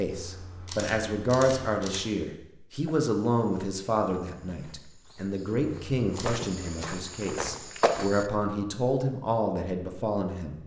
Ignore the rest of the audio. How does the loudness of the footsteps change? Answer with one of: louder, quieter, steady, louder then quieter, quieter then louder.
louder.